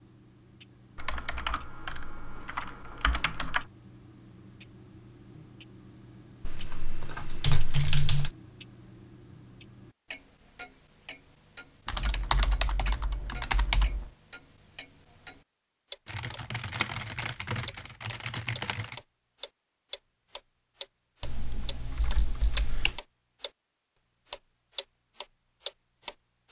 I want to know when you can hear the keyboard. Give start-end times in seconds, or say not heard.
0.9-3.6, 6.5-8.3, 11.8-14.1, 16.1-18.9, 21.2-23.0.